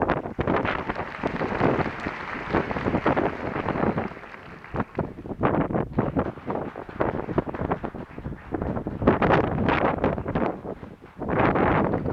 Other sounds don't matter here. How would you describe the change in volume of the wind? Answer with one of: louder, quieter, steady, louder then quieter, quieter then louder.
steady.